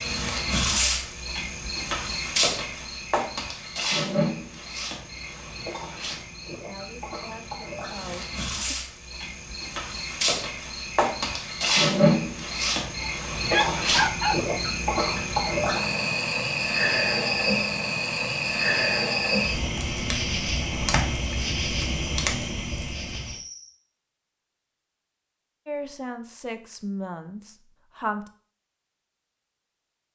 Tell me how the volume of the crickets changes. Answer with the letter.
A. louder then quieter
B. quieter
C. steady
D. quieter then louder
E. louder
D.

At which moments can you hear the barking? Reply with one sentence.
The barking can be heard from 13.0 to 14.4 s.